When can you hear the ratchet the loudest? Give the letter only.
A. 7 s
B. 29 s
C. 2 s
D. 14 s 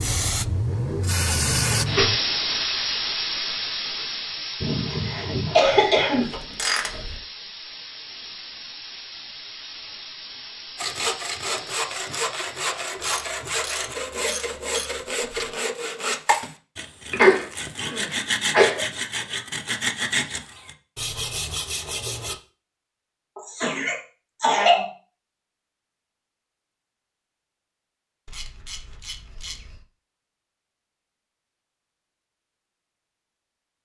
A.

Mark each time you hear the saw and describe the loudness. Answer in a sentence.
You can hear the saw from 10.8 to 22.4 s, at a steady volume.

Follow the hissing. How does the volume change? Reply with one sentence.
The loudness of the hissing goes down.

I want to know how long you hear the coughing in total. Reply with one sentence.
The coughing can be heard for 5 seconds in total.